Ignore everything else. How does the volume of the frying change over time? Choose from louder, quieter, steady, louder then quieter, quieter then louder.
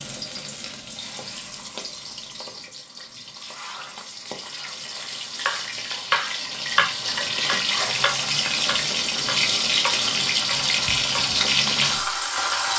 louder.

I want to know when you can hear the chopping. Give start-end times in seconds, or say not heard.
5.4-11.9.